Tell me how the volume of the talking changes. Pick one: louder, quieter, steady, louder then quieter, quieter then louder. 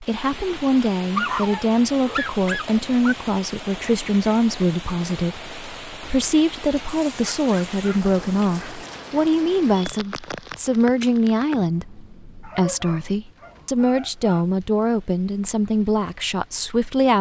steady.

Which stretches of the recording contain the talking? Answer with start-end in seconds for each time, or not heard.
0.0-17.1.